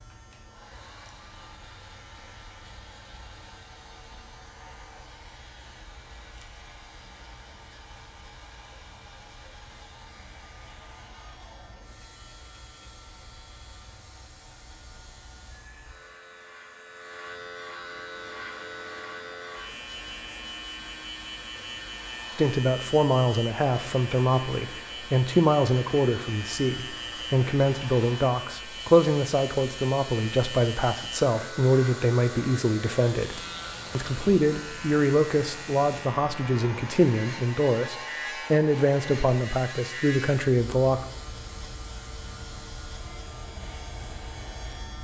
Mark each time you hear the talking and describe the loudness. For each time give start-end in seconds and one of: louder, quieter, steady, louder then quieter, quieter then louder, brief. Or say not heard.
22.4-41.0 steady.